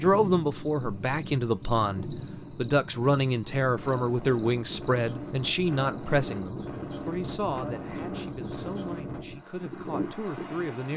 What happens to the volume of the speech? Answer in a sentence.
The volume of the speech goes down.